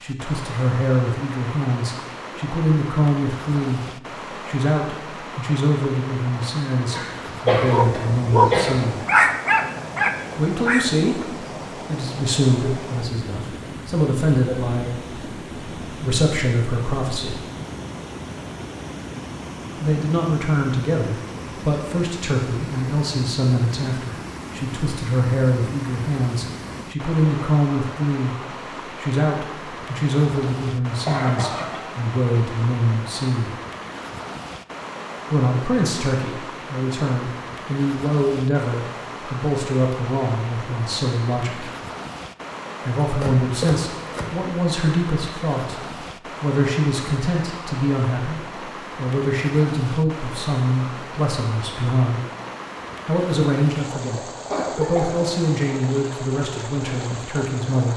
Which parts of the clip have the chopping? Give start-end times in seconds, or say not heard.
43.0-44.5.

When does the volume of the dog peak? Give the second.
9 s.